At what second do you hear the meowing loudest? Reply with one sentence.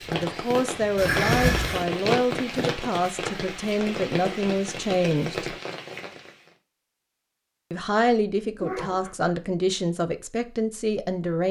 The loudest moment of the meowing is at 1 second.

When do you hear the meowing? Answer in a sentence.
You can hear the meowing from 0.9 to 1.9 s and from 8.6 to 9.3 s.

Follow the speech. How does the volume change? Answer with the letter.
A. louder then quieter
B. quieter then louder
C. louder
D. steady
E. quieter
D.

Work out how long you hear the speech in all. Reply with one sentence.
You can hear the speech for 9 seconds altogether.